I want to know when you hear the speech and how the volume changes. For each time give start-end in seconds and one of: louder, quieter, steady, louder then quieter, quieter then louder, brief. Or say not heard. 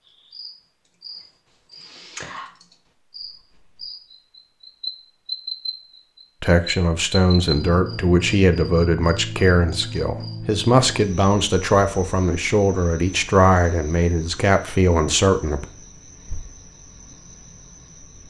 6.4-15.7 steady.